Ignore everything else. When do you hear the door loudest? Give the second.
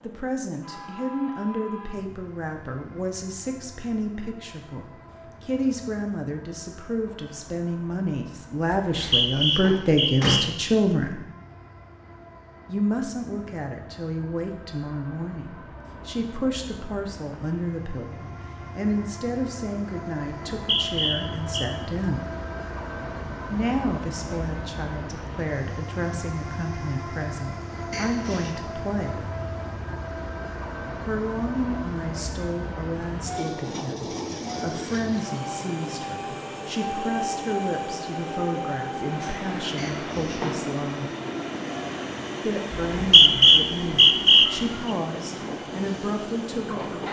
10 s.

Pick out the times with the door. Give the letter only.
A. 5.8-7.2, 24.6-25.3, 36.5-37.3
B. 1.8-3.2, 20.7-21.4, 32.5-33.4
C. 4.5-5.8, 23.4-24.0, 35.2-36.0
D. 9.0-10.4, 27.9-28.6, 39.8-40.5
D.